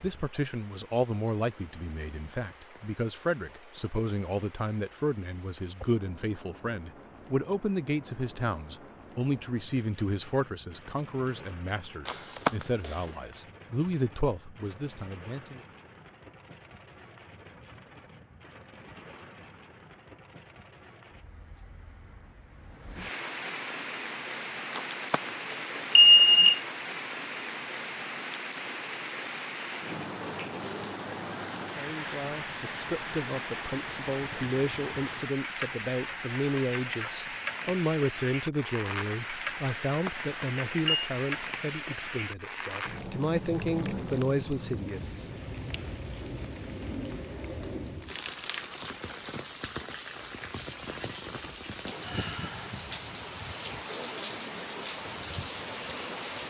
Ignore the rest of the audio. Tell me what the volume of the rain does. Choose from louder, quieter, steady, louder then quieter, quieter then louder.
louder.